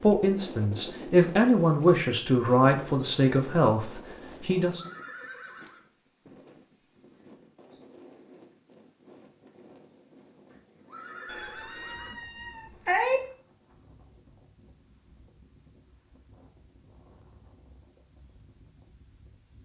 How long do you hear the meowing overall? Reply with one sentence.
You can hear the meowing for 2 seconds altogether.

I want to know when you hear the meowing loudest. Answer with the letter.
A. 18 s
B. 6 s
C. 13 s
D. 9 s
C.